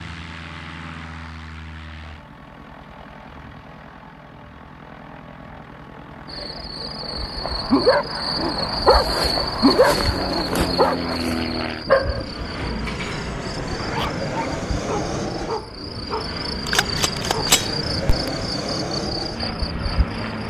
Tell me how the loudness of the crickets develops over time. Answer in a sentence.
The volume of the crickets goes down, then up.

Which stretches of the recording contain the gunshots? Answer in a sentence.
You can hear the gunshots from 16.6 to 18.3 s.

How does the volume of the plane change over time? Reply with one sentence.
The volume of the plane goes up.